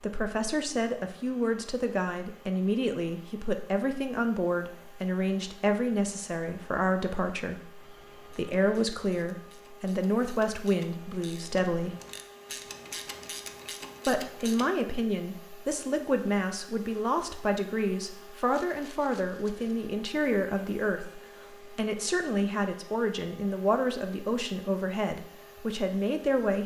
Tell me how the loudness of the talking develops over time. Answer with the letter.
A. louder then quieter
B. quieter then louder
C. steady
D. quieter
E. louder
C.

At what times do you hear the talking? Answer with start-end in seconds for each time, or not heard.
0.0-11.9, 14.1-26.6.